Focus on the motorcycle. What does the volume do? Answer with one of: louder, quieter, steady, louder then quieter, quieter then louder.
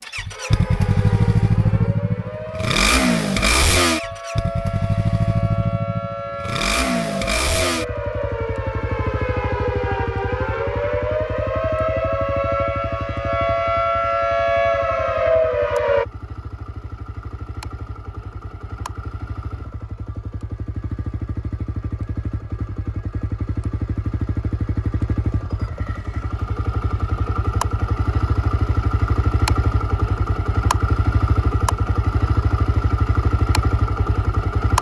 quieter then louder.